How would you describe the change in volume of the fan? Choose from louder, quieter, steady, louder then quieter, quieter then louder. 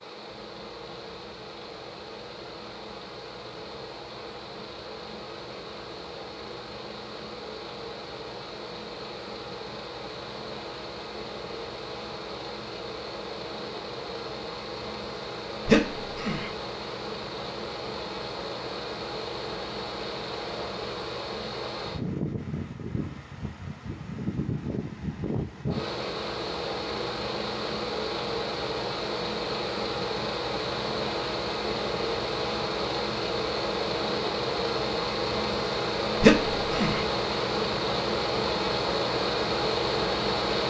louder.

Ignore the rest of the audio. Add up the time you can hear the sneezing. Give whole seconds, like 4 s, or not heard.
2 s.